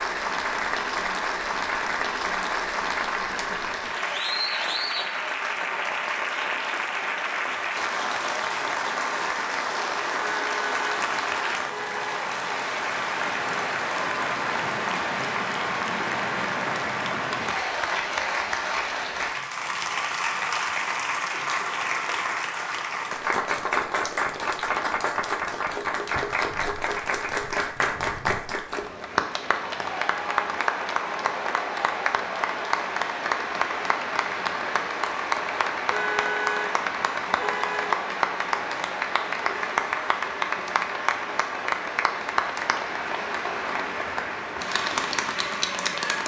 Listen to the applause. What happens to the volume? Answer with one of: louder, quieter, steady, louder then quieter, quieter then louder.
steady.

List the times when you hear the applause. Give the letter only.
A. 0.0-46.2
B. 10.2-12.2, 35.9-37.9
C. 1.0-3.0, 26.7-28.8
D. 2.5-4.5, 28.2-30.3
A.